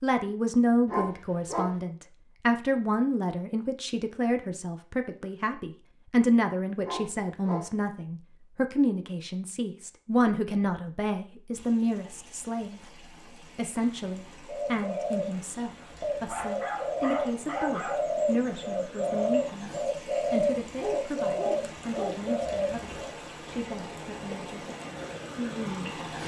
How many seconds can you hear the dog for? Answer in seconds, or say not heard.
5 s.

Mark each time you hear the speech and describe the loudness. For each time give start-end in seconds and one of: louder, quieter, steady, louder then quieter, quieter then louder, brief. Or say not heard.
0.0-24.6 quieter
25.4-26.0 brief.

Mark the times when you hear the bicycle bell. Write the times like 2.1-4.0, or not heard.
not heard.